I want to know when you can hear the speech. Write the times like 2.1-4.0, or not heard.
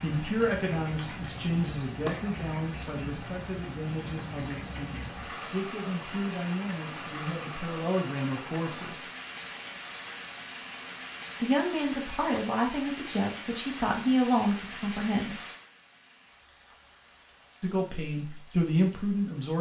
0.0-9.0, 11.4-15.3, 17.6-19.5.